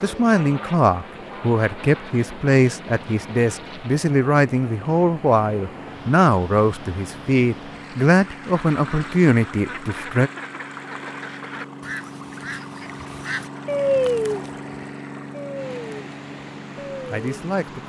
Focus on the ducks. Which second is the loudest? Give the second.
14 s.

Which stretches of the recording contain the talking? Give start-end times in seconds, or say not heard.
0.0-10.3, 17.1-17.8.